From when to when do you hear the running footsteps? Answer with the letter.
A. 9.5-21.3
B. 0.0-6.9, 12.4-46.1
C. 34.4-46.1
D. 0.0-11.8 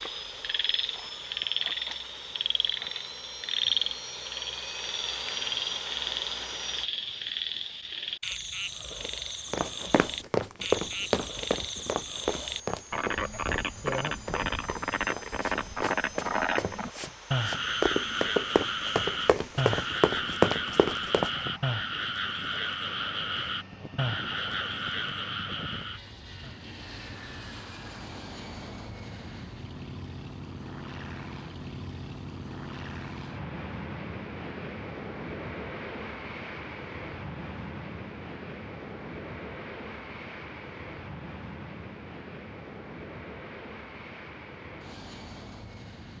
A.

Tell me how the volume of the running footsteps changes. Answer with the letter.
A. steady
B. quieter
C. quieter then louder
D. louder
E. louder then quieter
C.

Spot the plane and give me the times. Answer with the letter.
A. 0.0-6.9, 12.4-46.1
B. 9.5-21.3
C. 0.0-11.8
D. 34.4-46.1
A.